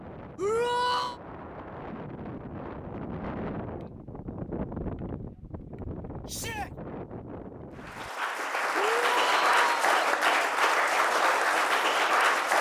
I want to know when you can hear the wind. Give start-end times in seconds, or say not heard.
0.0-8.1.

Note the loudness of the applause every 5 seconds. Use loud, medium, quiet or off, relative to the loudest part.
off, loud, loud.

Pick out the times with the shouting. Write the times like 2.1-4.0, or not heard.
0.3-1.2, 6.2-6.7, 8.8-9.9.